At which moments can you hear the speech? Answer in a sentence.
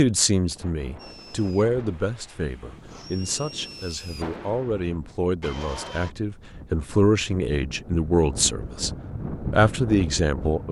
You can hear the speech from 0.0 to 10.6 s.